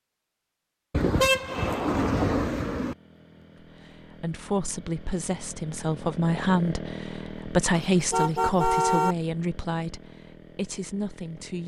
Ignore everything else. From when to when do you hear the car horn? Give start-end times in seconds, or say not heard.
0.9-3.0, 7.7-9.2.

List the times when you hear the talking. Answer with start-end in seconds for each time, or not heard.
3.6-11.6.